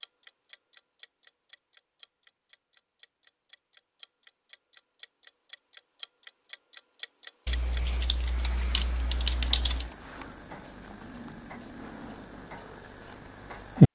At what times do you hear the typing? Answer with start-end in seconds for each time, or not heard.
7.5-9.9.